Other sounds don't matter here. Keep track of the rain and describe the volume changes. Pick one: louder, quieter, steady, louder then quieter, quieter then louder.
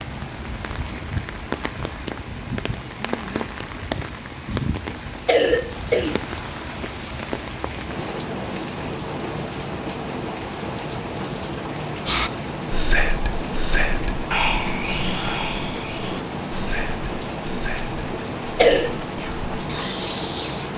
steady.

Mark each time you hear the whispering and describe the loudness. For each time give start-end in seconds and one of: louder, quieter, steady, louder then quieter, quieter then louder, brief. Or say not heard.
12.1-20.6 quieter.